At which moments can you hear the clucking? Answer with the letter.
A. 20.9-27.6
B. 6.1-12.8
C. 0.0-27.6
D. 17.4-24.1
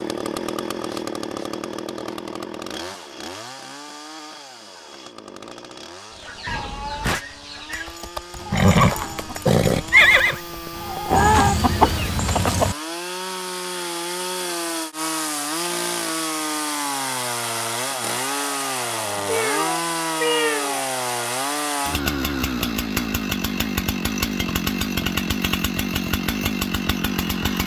B.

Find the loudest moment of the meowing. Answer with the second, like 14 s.
20 s.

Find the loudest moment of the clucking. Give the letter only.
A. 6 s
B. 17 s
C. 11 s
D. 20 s
C.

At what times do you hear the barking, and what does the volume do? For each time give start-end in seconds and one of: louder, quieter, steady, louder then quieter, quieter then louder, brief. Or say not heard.
not heard.